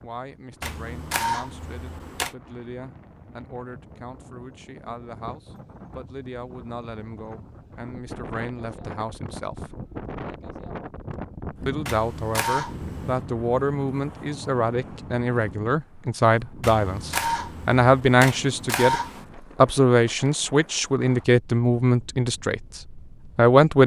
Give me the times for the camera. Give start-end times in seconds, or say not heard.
0.6-2.4, 11.8-13.2, 16.6-19.2.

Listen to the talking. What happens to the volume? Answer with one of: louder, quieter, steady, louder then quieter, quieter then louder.
louder.